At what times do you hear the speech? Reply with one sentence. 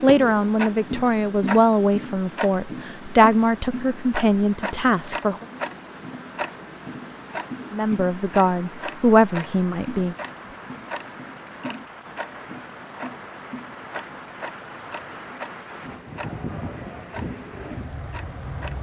You can hear the speech from 0.0 to 5.5 s and from 7.7 to 10.2 s.